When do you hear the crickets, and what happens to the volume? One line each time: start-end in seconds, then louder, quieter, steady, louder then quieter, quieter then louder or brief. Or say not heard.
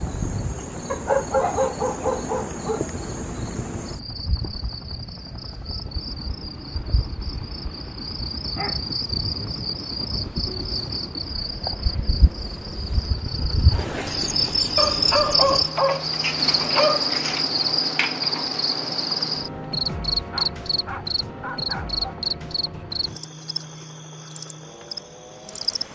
0.0-25.9 louder then quieter.